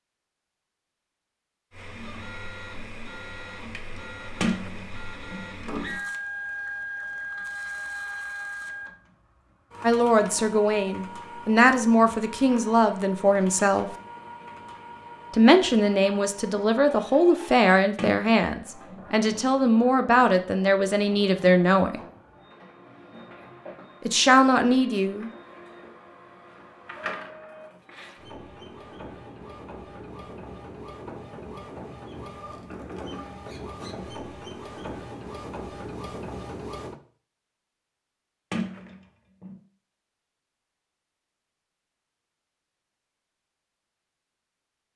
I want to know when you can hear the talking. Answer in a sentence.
You can hear the talking from 9.8 to 13.9 s, from 15.3 to 22.0 s and from 24.1 to 25.3 s.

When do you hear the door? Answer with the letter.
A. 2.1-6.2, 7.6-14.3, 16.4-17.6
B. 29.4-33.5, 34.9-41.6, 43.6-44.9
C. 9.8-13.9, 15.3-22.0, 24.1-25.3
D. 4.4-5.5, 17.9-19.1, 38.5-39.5
D.